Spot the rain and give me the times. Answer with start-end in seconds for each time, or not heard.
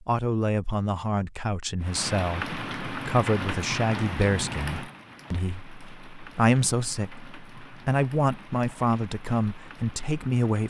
1.8-10.6.